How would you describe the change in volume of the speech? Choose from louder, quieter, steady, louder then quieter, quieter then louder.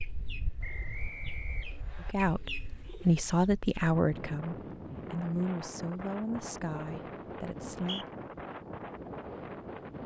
quieter.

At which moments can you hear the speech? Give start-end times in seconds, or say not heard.
2.0-8.1.